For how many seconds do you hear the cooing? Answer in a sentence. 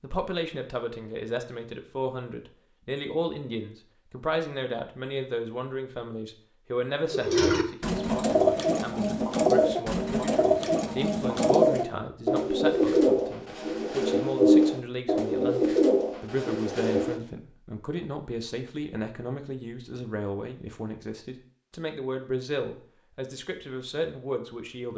The cooing can be heard for 10 seconds in total.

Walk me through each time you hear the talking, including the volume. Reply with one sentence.
The talking can be heard from 0.0 to 24.9 s, at a steady volume.